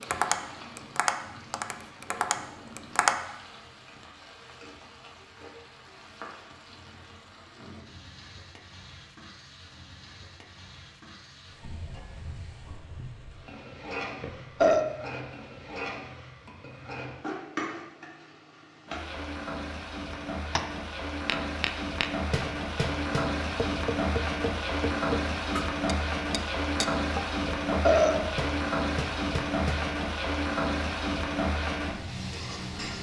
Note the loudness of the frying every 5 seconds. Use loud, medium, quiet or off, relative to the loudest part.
quiet, quiet, quiet, medium, loud, loud, loud.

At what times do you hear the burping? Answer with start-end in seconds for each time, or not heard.
14.2-14.8, 27.4-28.3.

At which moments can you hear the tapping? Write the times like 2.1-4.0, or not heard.
0.0-3.1, 20.1-29.9.